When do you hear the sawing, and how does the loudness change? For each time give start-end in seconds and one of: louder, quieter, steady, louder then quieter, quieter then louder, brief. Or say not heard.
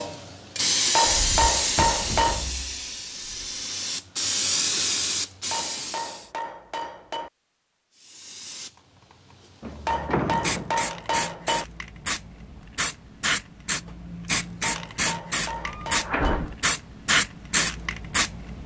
not heard.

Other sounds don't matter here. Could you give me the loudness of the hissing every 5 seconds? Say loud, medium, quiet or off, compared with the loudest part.
loud, medium, medium, loud.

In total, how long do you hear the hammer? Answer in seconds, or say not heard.
7 s.